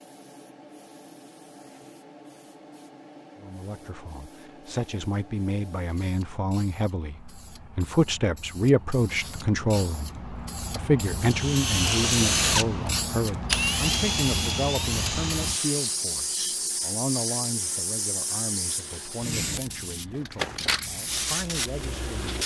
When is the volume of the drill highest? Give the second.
12 s.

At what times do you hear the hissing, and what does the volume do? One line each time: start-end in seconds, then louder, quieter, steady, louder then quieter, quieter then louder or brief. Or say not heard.
0.0-22.4 louder.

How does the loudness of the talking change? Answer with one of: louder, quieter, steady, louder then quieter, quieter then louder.
louder then quieter.